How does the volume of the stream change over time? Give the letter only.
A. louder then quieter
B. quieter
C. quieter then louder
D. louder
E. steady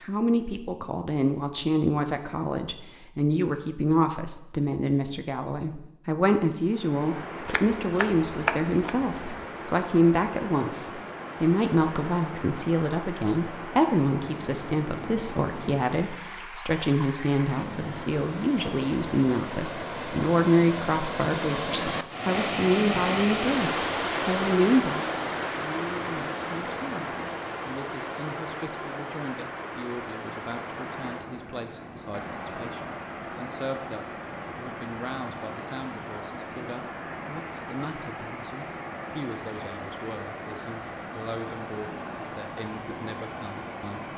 A.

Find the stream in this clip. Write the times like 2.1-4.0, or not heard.
6.6-44.1.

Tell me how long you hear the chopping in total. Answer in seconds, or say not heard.
2 s.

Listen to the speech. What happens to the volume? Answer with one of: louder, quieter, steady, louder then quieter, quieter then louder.
quieter.